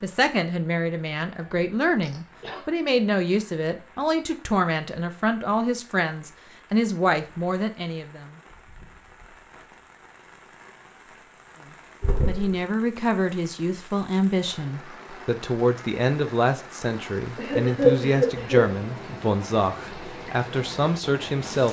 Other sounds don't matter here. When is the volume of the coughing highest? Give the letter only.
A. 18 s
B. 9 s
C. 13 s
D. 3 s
A.